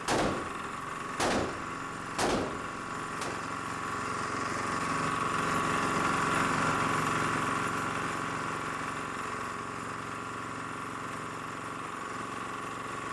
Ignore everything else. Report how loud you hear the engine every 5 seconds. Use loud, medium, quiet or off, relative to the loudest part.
medium, loud, medium.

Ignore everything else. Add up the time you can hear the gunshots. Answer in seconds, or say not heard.
3 s.